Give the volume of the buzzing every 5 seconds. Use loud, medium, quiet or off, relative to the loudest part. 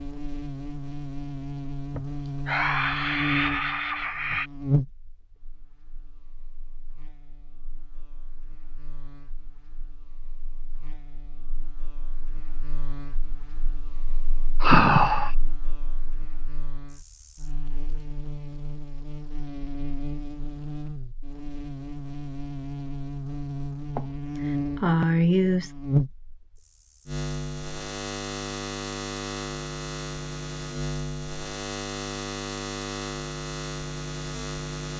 loud, quiet, quiet, medium, loud, loud, loud.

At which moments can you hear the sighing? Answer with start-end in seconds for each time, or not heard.
1.9-4.5, 14.6-15.3, 23.9-25.8.